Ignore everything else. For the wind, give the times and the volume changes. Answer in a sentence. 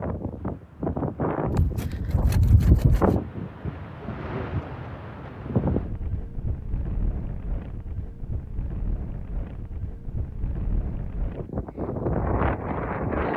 You can hear the wind from 0.0 to 13.3 s, getting quieter then louder.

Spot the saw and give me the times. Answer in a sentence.
You can hear the saw from 1.5 to 3.1 s.